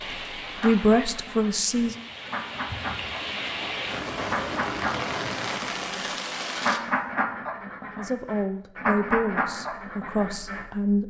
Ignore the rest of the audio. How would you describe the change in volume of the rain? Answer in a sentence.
The volume of the rain goes up.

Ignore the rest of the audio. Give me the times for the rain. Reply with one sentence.
The rain can be heard from 0.0 to 6.8 s.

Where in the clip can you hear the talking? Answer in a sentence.
The talking can be heard from 0.6 to 1.9 s and from 8.0 to 11.0 s.